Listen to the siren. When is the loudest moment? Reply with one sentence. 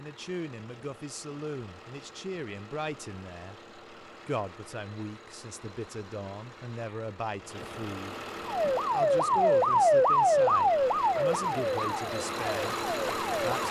The volume of the siren peaks at 10 seconds.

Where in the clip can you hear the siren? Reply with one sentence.
You can hear the siren from 8.4 to 13.6 s.